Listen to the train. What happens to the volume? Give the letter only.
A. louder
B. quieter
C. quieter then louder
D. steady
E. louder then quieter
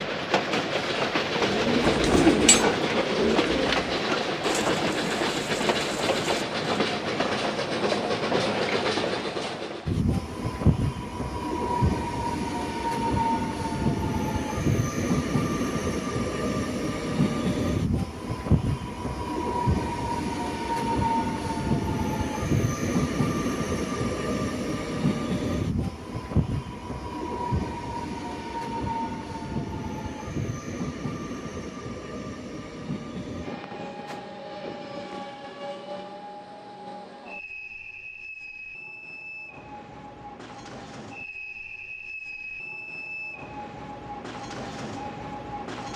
B.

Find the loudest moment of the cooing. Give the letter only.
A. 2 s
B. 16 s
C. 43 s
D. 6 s
A.